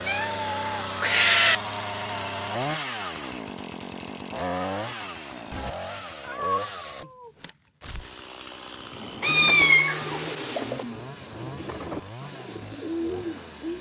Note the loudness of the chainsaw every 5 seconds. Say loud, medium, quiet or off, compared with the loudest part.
loud, medium, medium.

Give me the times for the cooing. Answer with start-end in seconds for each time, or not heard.
8.7-13.7.